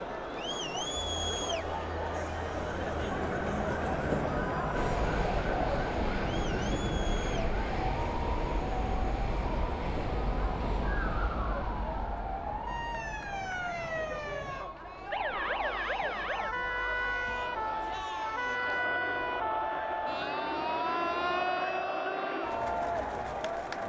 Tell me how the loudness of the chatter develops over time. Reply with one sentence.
The loudness of the chatter goes down, then up.